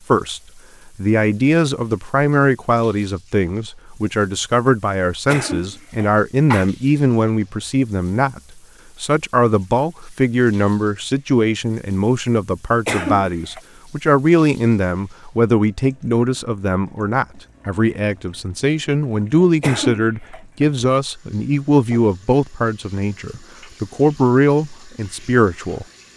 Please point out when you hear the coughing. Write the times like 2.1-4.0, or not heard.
5.2-6.7, 12.8-13.6, 19.6-20.4.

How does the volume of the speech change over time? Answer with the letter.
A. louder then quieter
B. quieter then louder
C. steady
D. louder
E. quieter
C.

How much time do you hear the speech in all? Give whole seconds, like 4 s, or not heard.
26 s.